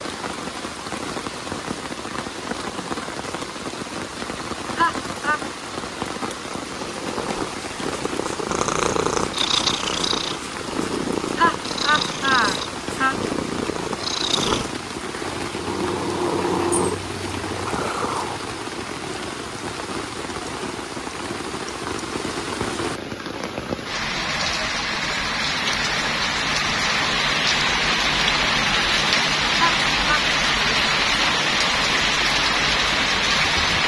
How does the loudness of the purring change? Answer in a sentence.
The loudness of the purring stays about the same.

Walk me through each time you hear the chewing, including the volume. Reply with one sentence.
The chewing can't be heard in this clip.